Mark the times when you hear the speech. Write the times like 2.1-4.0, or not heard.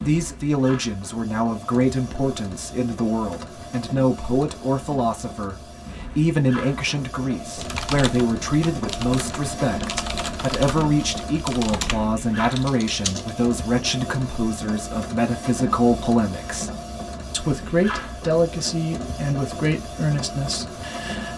0.0-16.7, 17.3-21.3.